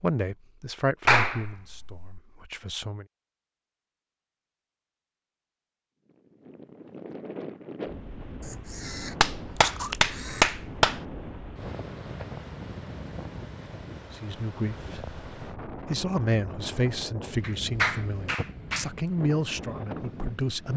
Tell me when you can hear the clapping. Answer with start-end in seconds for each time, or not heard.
1.1-2.0, 9.2-11.0, 17.4-18.9.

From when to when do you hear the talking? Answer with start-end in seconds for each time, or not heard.
0.0-3.0, 14.1-20.7.